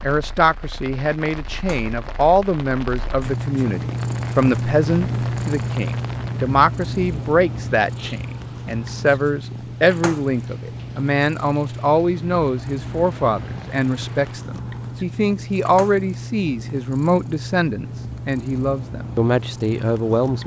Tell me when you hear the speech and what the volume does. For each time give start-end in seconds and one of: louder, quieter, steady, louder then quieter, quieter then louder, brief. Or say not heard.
0.0-20.4 steady.